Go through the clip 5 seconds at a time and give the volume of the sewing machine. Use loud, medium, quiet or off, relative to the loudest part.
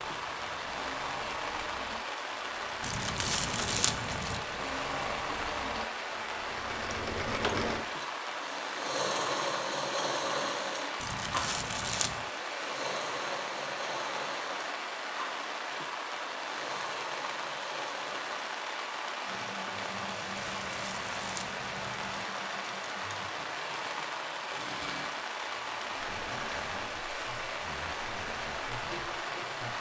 medium, loud, loud, medium, medium, medium.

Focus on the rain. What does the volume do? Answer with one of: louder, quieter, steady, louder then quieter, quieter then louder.
steady.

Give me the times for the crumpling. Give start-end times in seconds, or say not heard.
2.8-4.5, 11.0-12.3, 20.4-22.2.